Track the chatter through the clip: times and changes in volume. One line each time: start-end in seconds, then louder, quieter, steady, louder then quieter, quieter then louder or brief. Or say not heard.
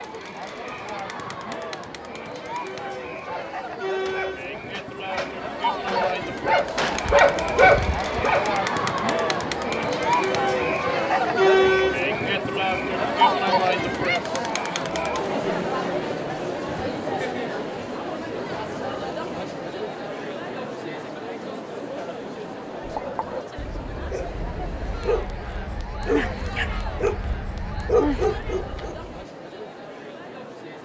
0.0-30.8 louder then quieter.